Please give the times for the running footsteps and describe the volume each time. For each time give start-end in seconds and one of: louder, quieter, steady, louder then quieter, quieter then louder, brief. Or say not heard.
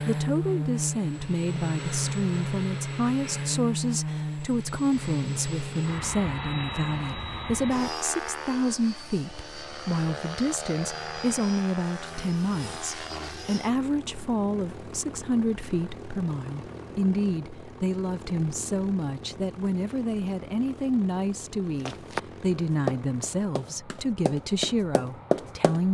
21.9-25.9 quieter then louder.